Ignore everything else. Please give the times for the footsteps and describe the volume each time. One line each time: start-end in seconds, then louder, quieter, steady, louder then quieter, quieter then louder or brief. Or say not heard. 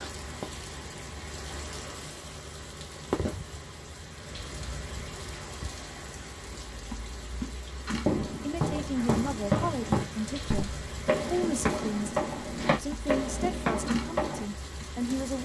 8.1-14.4 steady.